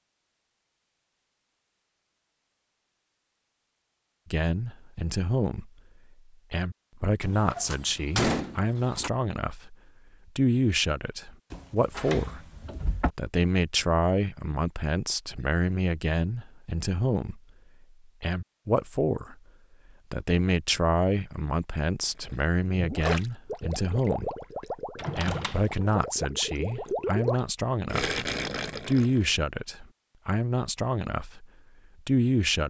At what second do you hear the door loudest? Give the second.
8 s.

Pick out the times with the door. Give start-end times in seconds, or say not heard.
7.2-9.1, 11.5-13.1, 24.9-25.9.